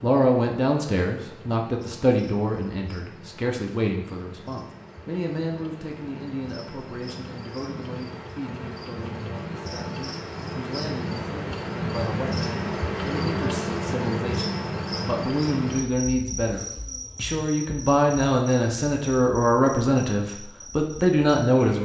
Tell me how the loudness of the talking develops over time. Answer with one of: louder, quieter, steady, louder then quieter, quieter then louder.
quieter then louder.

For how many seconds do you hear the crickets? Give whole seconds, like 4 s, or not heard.
22 s.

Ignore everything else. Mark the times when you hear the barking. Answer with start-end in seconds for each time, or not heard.
not heard.